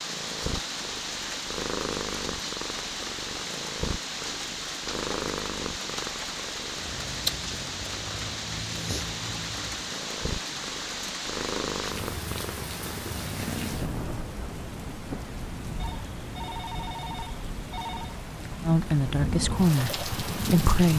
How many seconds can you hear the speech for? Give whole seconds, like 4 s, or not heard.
2 s.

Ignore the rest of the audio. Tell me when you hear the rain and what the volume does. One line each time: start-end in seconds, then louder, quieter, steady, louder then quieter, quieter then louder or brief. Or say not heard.
0.0-20.9 steady.